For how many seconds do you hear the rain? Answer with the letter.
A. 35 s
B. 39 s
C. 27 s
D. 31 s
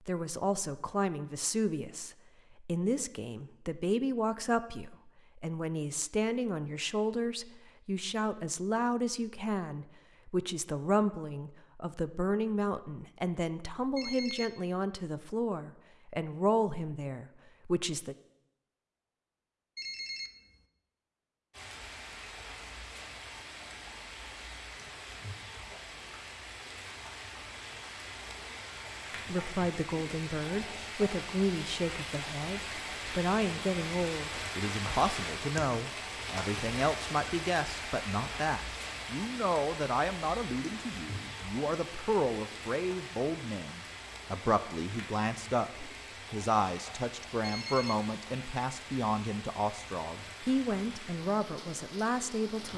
D.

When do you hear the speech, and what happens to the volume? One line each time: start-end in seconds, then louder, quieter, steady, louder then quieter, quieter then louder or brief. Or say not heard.
0.1-18.1 steady
29.2-52.7 steady.